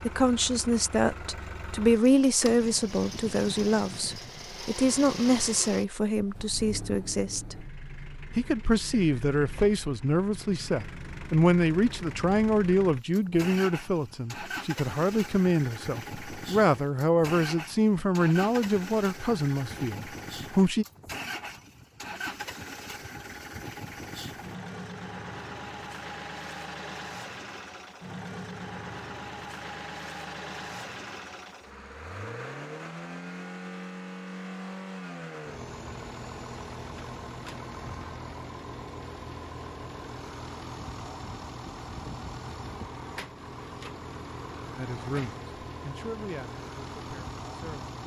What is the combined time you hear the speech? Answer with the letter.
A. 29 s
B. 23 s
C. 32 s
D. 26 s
B.